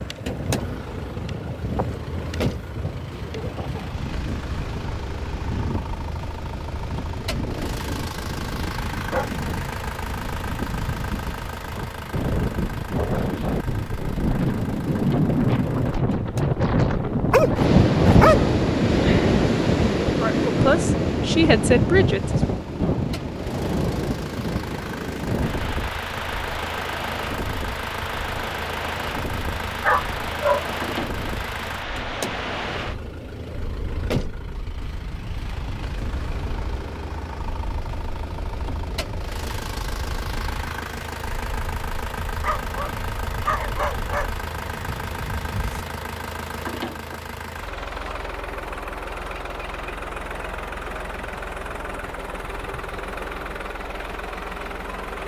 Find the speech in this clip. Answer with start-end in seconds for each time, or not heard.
20.2-22.5.